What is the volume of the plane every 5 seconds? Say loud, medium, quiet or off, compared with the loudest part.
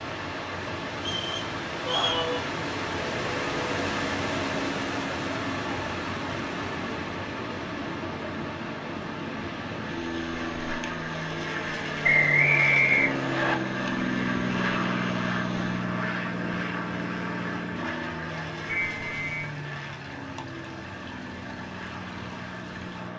medium, medium, loud, loud, medium.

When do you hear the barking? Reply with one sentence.
You can't hear the barking here.